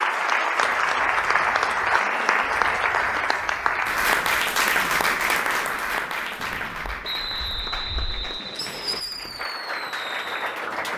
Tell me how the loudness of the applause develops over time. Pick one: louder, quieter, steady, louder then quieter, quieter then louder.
quieter.